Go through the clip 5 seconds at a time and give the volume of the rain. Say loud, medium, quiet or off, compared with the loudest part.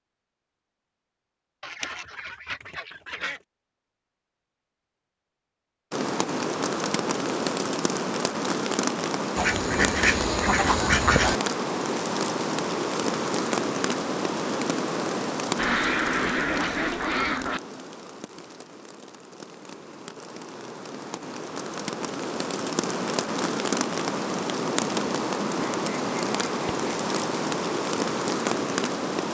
off, loud, loud, medium, loud, loud.